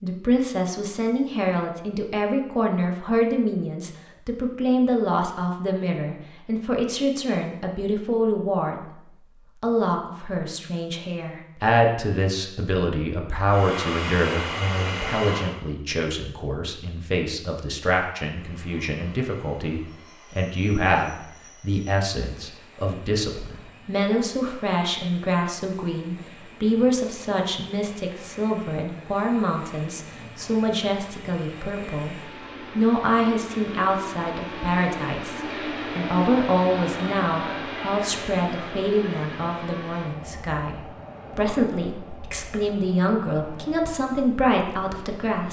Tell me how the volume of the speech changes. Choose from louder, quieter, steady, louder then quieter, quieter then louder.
steady.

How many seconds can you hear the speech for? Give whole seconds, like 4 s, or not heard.
45 s.